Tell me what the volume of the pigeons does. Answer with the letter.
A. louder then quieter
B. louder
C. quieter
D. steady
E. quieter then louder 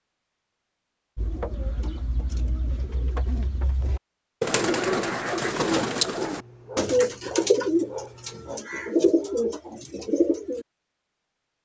B.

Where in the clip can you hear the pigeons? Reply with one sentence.
You can hear the pigeons from 1.1 to 10.7 s.